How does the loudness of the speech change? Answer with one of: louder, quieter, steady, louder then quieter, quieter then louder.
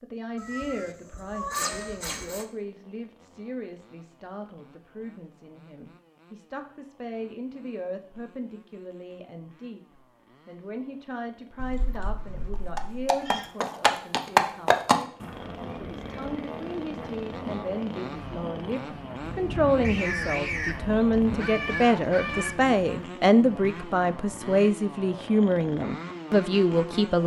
louder.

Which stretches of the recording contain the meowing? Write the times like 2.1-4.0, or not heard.
0.3-2.5, 11.6-13.5, 19.8-22.6.